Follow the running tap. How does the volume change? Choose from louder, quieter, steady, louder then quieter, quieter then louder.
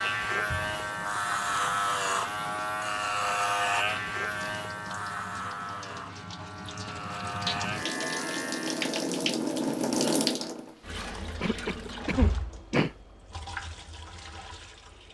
louder then quieter.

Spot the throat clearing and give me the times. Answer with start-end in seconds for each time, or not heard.
11.4-12.9.